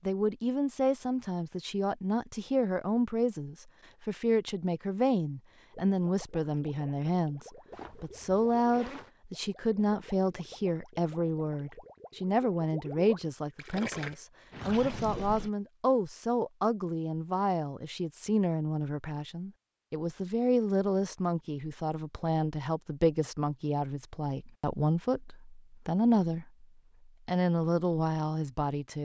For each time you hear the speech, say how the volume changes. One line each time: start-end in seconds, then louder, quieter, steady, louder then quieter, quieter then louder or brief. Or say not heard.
0.1-26.6 steady
27.2-29.0 brief.